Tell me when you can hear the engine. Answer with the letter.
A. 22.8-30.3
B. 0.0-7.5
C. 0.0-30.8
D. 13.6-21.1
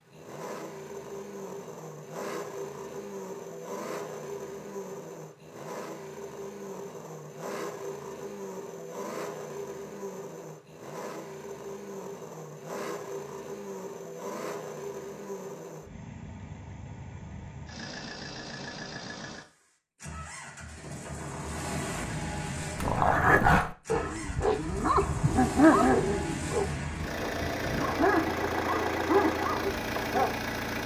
C.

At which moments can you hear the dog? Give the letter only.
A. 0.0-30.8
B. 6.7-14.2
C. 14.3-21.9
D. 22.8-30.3
D.